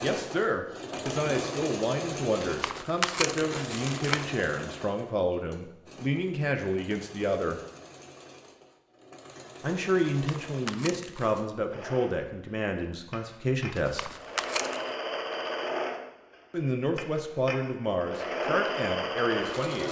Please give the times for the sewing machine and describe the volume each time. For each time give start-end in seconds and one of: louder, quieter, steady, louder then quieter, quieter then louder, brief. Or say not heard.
0.0-19.8 quieter then louder.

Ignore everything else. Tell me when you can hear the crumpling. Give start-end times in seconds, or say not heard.
2.4-4.2, 10.1-11.4, 13.8-14.8.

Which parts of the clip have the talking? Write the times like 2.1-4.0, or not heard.
0.0-7.5, 9.6-14.1, 16.5-19.8.